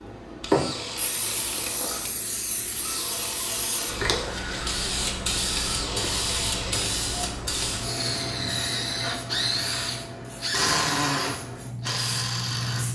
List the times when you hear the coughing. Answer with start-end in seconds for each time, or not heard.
not heard.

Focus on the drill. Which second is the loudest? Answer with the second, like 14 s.
11 s.